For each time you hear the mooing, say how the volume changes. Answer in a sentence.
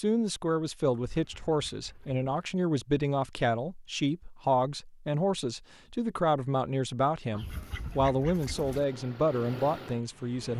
You can't hear the mooing here.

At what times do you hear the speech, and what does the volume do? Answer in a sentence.
The speech can be heard from 0.0 to 10.5 s, at a steady volume.